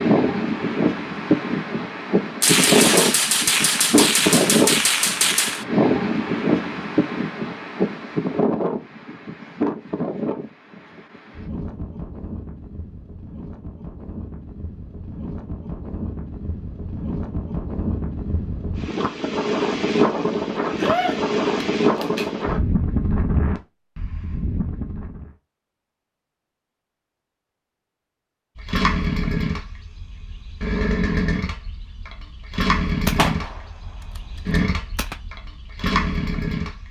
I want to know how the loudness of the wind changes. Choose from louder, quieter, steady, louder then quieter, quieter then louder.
quieter then louder.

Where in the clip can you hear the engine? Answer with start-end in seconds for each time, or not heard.
28.6-36.8.